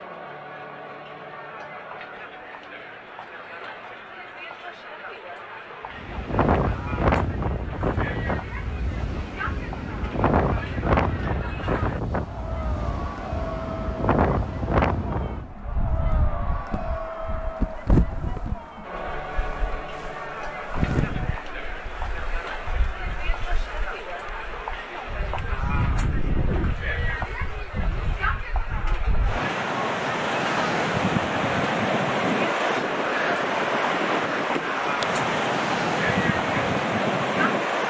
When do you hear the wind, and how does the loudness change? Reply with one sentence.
The wind can be heard from 5.9 to 37.8 s, getting quieter then louder.